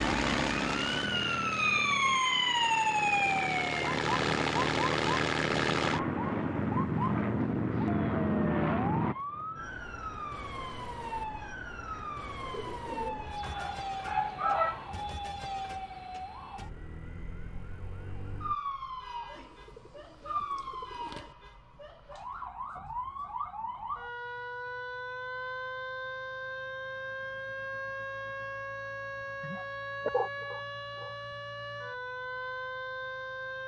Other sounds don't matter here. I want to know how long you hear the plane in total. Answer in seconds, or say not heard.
9 s.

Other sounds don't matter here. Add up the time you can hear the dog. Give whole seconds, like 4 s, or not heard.
3 s.